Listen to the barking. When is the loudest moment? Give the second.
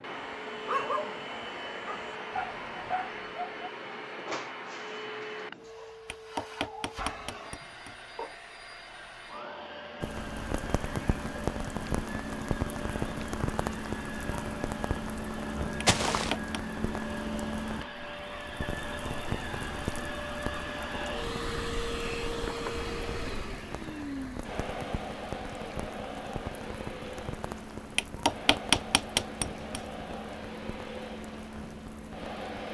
1 s.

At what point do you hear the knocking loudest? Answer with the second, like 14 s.
29 s.